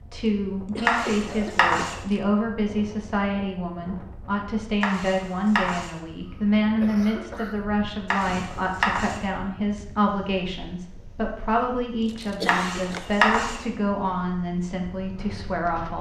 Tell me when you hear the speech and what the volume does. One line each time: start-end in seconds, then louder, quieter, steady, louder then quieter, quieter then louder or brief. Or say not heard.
0.1-15.9 steady.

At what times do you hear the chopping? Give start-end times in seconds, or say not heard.
0.8-1.9, 4.8-5.9, 8.1-9.2, 12.4-13.6.